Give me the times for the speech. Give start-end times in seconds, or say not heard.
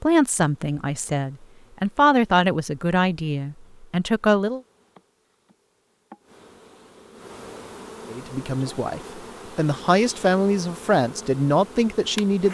0.0-4.6, 8.1-12.4.